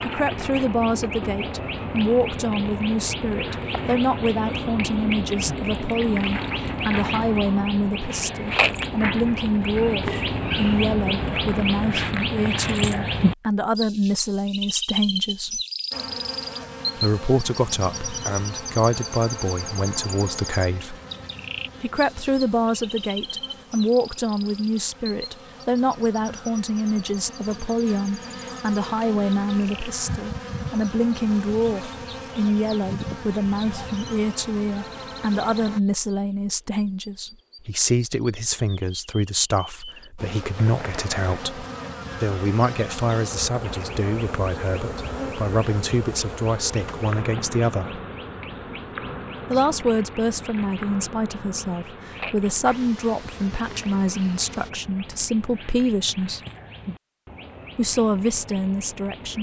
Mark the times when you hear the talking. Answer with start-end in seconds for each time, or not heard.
0.0-15.6, 16.9-20.9, 21.8-48.0, 49.5-56.4, 57.8-59.3.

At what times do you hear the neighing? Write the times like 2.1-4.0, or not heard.
not heard.